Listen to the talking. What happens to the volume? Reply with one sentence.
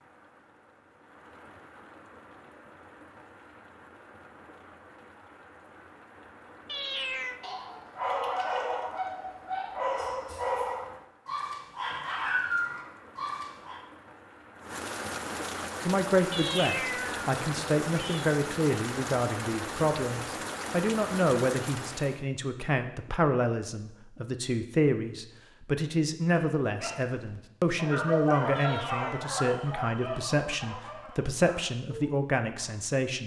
The loudness of the talking stays about the same.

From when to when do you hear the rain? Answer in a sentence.
The rain can be heard from 0.0 to 22.2 s.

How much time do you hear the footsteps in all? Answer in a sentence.
You can't hear the footsteps here.